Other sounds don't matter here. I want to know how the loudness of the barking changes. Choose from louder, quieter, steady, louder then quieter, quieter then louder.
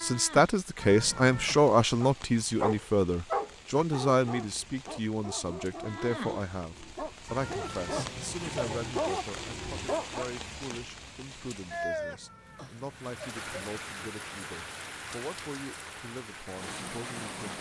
quieter then louder.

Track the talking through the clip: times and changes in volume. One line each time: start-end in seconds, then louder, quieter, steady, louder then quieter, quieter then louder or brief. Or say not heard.
0.0-17.5 quieter.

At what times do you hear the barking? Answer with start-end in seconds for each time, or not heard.
2.0-10.3.